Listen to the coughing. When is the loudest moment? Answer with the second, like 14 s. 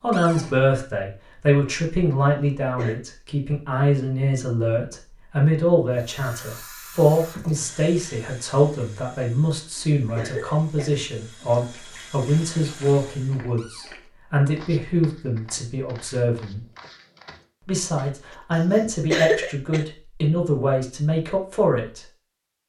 19 s.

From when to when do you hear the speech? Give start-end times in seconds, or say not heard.
0.0-16.6, 17.6-22.0.